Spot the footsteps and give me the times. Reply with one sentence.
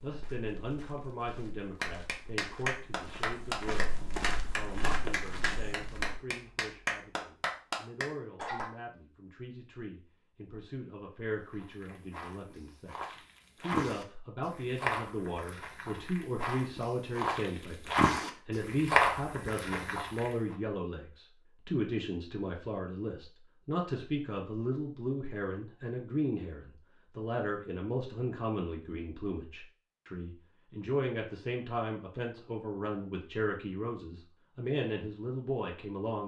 You can hear the footsteps from 0.0 to 6.2 s and from 11.5 to 20.3 s.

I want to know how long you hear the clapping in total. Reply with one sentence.
The clapping can be heard for 7 seconds in total.